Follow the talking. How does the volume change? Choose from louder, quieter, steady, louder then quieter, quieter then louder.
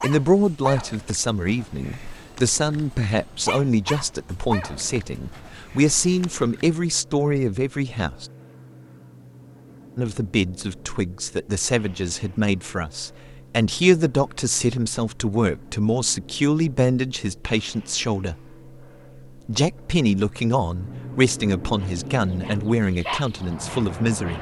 steady.